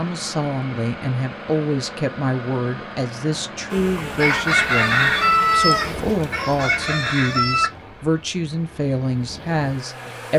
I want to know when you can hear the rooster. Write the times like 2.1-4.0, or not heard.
4.0-7.7.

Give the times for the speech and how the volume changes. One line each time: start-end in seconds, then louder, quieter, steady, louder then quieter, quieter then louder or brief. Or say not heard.
0.0-10.3 steady.